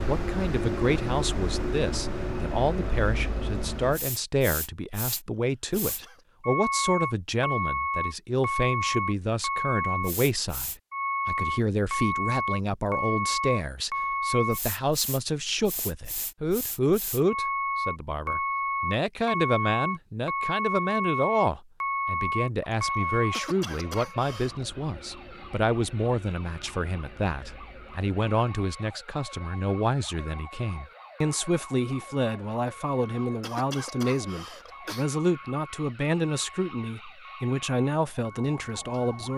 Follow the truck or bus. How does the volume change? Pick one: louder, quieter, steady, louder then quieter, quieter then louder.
quieter.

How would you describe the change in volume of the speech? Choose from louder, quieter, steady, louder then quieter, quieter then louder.
steady.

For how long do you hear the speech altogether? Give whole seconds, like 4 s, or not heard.
39 s.